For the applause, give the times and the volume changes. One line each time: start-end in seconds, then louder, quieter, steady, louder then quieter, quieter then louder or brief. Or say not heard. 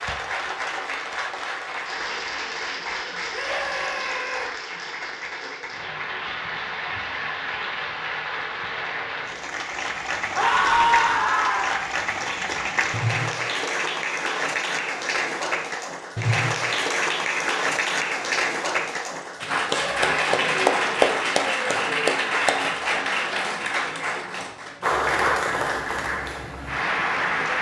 0.0-27.5 louder.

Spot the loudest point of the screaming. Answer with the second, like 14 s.
11 s.